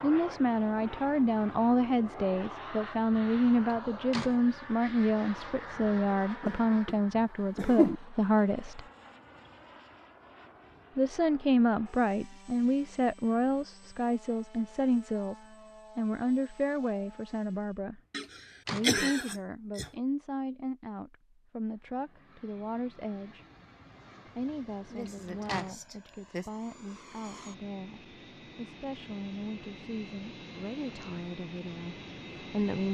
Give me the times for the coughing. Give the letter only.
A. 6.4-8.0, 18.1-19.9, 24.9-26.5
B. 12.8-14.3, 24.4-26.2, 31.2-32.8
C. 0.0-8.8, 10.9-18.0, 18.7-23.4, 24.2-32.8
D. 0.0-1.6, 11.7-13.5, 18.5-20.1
A.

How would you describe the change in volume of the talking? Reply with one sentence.
The loudness of the talking goes down.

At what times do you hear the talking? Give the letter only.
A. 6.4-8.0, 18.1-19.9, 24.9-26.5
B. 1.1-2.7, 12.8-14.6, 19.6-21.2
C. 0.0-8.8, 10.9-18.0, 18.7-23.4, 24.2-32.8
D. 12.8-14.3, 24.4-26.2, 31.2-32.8
C.